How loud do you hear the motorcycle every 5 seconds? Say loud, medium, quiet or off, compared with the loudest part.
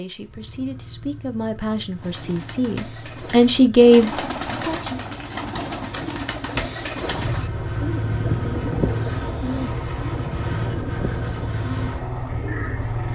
quiet, loud, loud.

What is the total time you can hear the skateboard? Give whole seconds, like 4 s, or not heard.
not heard.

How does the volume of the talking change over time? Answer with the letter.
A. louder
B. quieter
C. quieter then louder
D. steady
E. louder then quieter
A.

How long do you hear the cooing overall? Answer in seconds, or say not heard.
11 s.